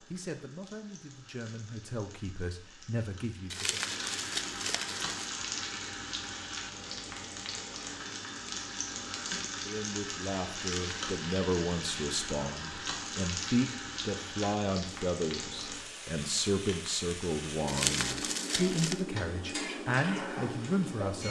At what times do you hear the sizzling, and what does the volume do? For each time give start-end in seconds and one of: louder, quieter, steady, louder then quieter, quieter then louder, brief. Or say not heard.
0.0-21.2 louder.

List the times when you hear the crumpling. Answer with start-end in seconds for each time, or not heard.
3.5-5.3, 10.6-11.0, 17.6-19.0.